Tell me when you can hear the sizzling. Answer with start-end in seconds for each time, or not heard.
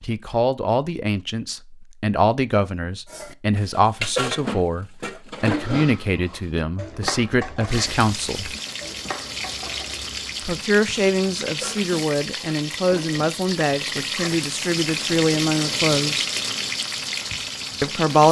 7.7-18.2.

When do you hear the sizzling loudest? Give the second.
16 s.